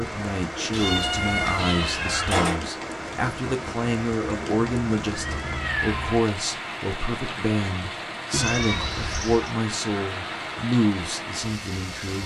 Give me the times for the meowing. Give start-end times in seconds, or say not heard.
0.7-2.6, 4.5-6.2, 8.3-9.6.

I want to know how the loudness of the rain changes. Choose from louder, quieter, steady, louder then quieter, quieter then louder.
steady.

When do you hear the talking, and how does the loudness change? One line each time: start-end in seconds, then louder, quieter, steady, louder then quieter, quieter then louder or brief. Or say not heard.
0.0-12.2 steady.